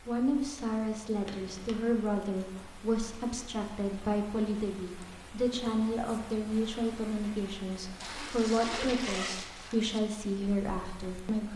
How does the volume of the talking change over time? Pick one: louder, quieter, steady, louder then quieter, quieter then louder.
steady.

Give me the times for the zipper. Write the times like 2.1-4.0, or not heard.
1.2-1.9, 8.0-10.0.